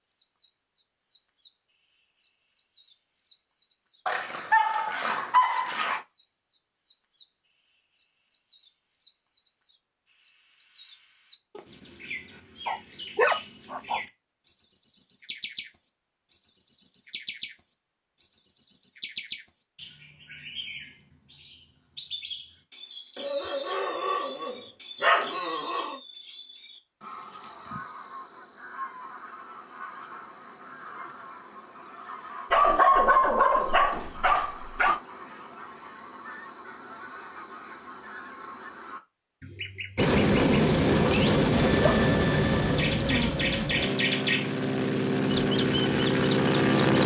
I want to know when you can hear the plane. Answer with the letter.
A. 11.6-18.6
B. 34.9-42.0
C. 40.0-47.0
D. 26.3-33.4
C.